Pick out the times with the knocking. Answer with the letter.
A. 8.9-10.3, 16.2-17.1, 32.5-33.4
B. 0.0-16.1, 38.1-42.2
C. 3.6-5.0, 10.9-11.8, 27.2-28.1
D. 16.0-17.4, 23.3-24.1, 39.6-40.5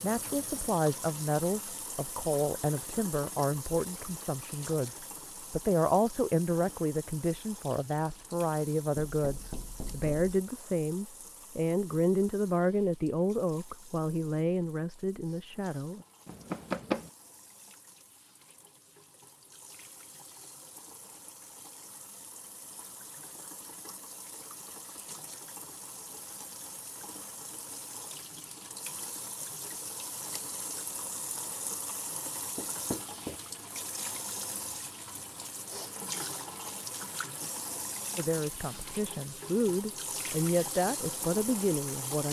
A.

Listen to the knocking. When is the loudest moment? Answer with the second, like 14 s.
17 s.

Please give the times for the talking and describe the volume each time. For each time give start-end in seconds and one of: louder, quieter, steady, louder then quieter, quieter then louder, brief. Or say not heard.
0.0-16.1 steady
38.1-42.2 louder.